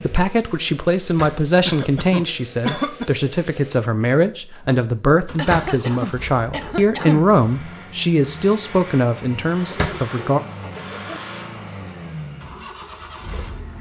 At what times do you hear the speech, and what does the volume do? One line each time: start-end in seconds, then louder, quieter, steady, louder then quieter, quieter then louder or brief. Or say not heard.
0.0-10.4 steady.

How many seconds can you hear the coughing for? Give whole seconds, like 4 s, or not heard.
5 s.